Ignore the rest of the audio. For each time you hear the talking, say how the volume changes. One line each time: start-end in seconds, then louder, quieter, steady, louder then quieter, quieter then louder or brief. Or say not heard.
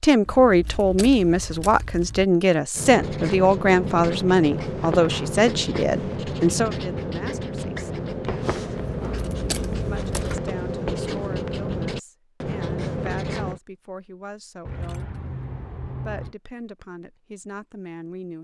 0.0-7.9 quieter
9.8-15.1 steady
16.1-18.3 brief.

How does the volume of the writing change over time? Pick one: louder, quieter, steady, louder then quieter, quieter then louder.
steady.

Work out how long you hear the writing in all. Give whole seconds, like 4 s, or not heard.
11 s.